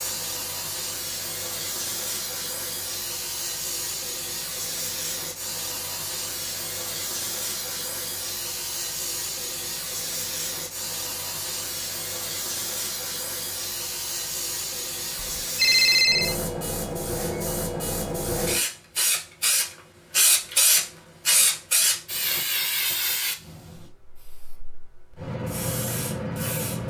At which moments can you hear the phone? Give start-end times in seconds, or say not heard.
15.2-16.4.